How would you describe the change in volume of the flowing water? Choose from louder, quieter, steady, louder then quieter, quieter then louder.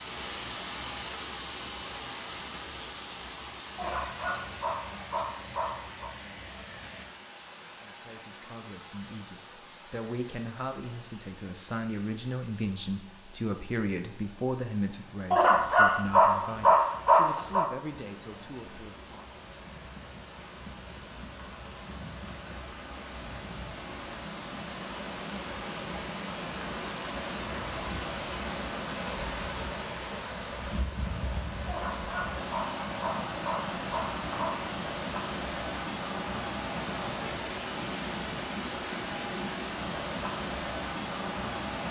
quieter then louder.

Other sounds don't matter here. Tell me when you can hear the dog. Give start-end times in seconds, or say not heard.
3.8-6.1, 15.3-17.6, 31.6-34.5.